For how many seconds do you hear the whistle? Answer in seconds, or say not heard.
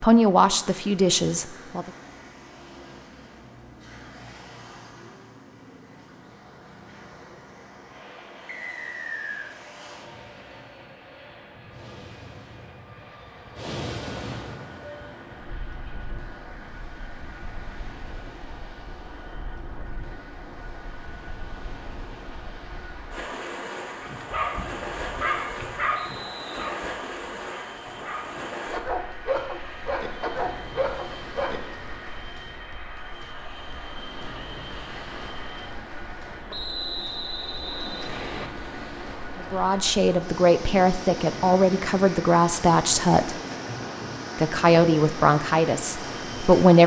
4 s.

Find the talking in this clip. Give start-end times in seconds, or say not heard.
0.0-1.9, 39.5-43.4, 44.4-46.8.